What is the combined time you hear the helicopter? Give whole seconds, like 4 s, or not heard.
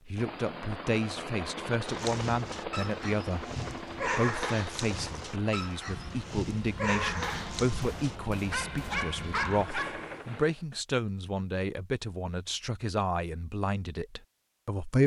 11 s.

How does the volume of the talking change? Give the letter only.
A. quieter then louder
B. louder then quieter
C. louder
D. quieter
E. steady
E.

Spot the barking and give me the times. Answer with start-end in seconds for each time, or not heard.
1.9-10.2.